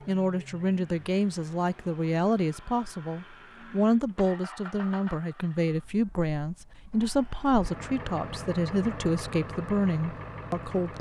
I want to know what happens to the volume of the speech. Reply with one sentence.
The loudness of the speech stays about the same.